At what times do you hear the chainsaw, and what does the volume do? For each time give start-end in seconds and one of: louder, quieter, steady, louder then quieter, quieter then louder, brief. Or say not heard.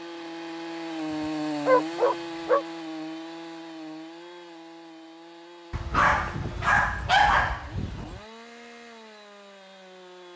0.0-10.3 quieter.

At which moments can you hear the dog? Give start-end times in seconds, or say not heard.
1.6-2.6, 5.7-8.2.